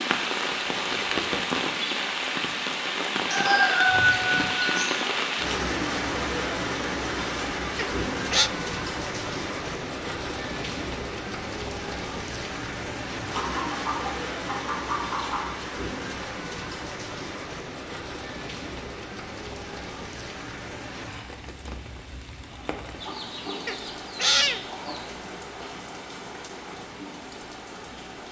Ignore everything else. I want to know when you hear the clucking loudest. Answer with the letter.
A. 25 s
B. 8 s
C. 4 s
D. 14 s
C.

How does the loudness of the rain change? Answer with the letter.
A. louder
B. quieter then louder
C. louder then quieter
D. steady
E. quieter
E.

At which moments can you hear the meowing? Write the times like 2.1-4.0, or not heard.
7.8-8.5, 23.6-24.6.